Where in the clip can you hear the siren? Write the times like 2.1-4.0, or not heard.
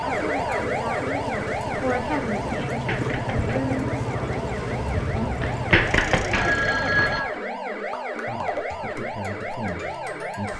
0.0-10.5.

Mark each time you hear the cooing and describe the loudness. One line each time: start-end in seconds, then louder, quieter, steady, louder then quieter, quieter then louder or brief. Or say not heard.
not heard.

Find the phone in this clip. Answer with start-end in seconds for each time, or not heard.
2.7-3.5, 5.4-7.2.